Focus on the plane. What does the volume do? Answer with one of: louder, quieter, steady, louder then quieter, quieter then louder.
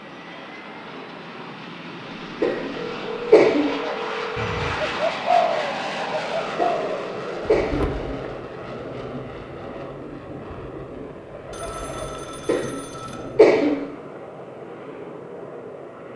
louder then quieter.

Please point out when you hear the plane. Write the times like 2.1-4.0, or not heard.
0.0-16.1.